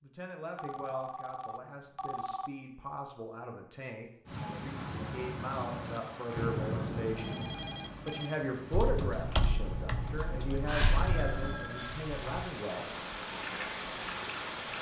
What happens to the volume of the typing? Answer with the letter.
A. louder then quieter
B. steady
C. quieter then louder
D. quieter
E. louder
D.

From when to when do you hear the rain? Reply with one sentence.
You can hear the rain from 4.2 to 14.7 s.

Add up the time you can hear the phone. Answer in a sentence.
You can hear the phone for 5 seconds altogether.